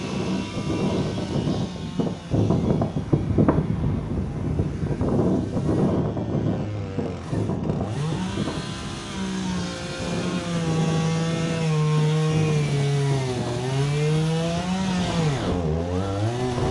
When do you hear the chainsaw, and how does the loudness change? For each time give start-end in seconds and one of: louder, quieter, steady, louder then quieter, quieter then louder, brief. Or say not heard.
0.0-16.6 louder.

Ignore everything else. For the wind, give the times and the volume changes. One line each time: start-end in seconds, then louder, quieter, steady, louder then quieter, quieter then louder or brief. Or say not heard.
0.0-16.6 quieter.